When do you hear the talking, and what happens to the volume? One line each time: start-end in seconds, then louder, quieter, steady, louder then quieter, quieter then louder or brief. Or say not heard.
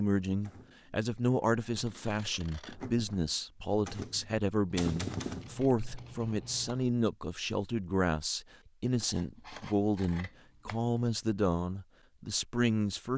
0.0-13.1 steady.